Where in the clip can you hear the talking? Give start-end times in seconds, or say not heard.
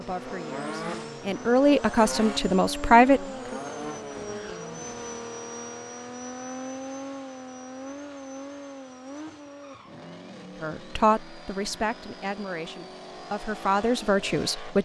0.0-3.5, 10.6-14.7.